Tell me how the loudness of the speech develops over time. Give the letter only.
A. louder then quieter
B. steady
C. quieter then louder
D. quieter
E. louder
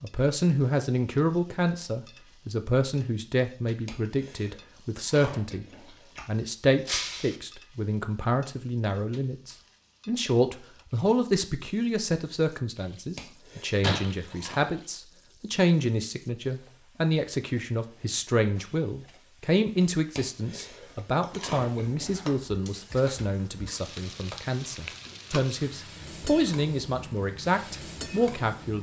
B.